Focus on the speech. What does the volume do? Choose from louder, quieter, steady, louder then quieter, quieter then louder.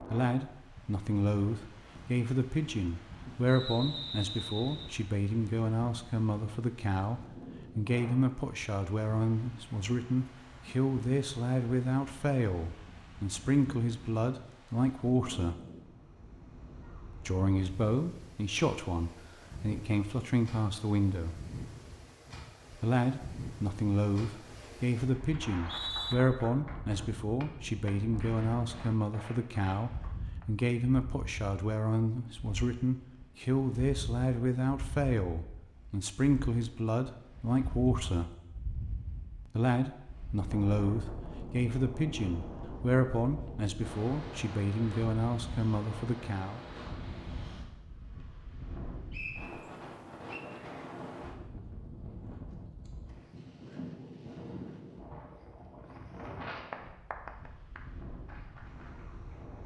steady.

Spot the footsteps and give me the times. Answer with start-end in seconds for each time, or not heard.
not heard.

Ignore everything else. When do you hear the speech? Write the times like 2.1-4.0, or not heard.
0.0-15.6, 17.1-21.4, 22.7-38.3, 39.5-46.6.